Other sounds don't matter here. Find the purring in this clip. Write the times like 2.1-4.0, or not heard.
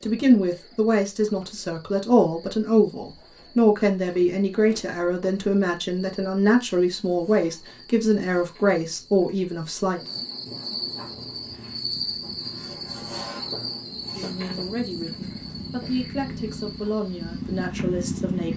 11.0-18.5.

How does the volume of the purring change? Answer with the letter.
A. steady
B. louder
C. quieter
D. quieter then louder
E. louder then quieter
B.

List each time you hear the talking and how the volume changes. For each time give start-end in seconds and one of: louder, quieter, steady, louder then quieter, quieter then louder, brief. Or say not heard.
0.0-10.0 steady
14.2-18.5 steady.